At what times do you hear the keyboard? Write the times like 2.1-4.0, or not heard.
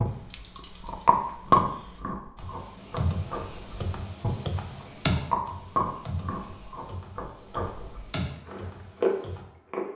0.1-9.4.